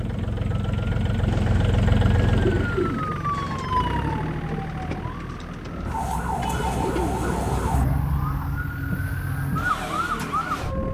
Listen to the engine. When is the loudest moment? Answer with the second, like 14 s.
2 s.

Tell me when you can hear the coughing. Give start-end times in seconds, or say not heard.
not heard.